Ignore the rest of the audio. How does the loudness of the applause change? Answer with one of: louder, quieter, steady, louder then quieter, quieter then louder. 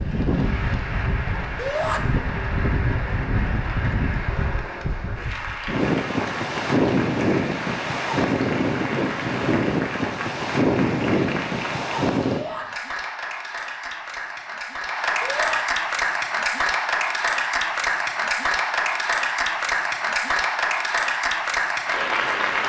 louder.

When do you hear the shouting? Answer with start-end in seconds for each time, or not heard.
1.6-2.0, 12.2-12.7, 15.2-15.6.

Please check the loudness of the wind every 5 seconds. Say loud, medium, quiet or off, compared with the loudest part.
medium, loud, loud, off, off.